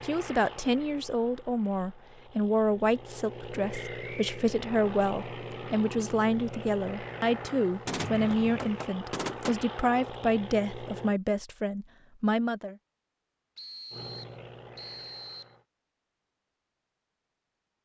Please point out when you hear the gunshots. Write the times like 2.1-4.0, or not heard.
7.8-9.7.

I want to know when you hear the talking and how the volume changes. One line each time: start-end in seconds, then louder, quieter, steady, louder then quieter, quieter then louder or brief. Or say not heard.
0.0-12.8 steady.